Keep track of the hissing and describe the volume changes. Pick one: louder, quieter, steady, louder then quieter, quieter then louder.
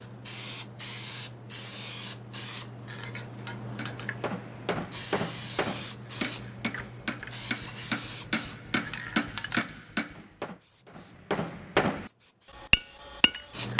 quieter.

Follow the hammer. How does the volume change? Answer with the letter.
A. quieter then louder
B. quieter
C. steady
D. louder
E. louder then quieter
D.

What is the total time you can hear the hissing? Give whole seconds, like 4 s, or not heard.
14 s.